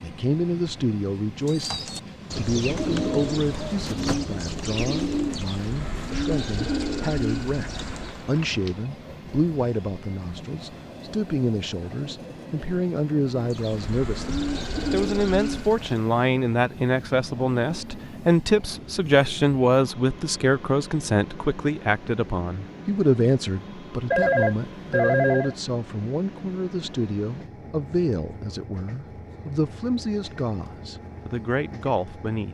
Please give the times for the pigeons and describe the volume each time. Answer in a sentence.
The pigeons can be heard from 1.4 to 8.4 s, at a steady volume; and briefly from 13.3 to 16.0 s.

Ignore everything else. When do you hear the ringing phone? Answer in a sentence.
You can hear the ringing phone from 7.8 to 8.8 s and from 24.1 to 25.6 s.